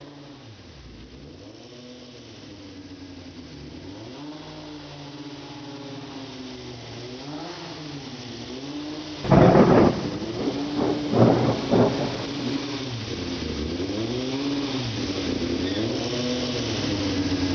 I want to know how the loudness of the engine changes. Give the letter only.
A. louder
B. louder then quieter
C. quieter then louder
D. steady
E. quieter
A.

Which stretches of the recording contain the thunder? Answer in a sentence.
The thunder can be heard from 9.2 to 12.6 s.